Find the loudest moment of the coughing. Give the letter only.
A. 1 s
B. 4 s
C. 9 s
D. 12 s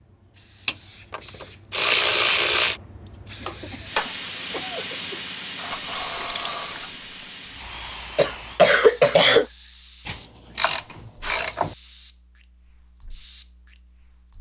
C.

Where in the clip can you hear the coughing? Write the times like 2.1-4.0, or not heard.
3.4-5.2, 8.2-9.4.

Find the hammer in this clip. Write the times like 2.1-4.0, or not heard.
not heard.